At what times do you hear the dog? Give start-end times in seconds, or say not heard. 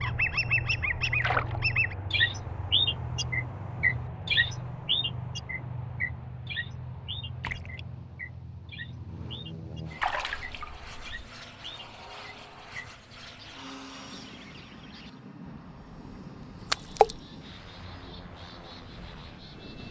not heard.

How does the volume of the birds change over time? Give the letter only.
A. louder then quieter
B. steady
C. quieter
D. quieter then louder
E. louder
C.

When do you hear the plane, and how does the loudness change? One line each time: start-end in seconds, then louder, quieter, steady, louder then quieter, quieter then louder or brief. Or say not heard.
0.0-19.8 quieter.